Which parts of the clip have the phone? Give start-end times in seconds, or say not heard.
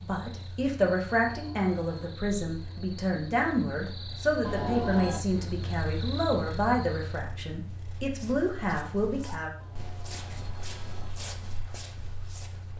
1.2-2.2, 4.4-5.2, 9.6-11.2.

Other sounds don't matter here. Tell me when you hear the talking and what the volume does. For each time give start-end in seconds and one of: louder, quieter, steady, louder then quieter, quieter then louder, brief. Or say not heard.
0.0-9.5 steady.